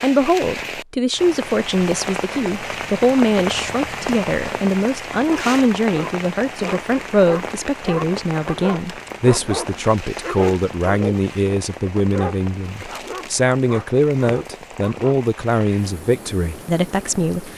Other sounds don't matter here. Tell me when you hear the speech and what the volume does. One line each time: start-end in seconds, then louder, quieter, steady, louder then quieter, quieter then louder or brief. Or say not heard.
0.0-17.5 steady.